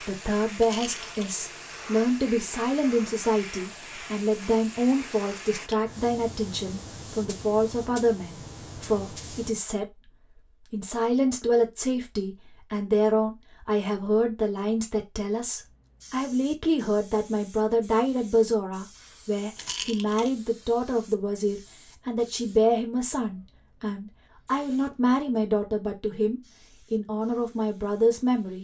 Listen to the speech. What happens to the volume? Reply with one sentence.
The volume of the speech stays about the same.